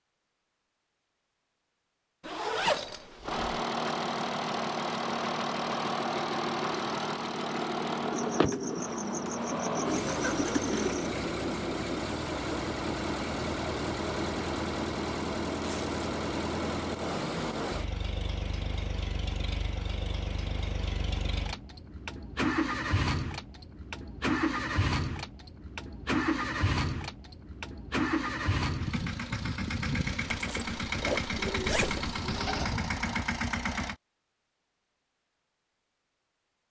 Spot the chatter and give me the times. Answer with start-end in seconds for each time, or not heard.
not heard.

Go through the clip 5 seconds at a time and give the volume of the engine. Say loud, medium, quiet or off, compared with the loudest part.
loud, loud, loud, loud, loud, loud, loud, off.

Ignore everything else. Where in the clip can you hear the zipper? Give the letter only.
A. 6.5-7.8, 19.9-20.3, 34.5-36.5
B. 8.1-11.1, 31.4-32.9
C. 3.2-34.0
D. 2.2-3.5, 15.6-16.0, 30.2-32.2
D.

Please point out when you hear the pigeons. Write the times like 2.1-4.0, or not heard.
8.1-11.1, 31.4-32.9.